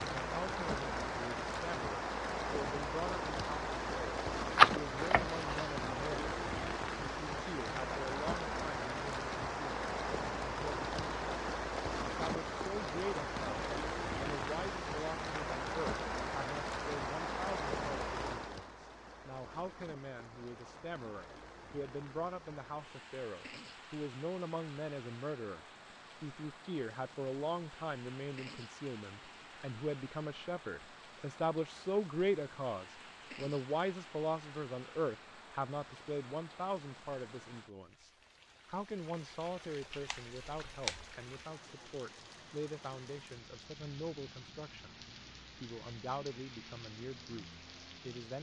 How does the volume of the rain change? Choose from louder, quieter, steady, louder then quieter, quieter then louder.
quieter.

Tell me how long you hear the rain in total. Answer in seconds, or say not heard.
48 s.